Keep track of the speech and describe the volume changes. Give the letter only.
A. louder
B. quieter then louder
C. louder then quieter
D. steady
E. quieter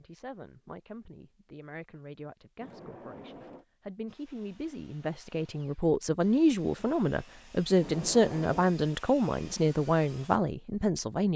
A.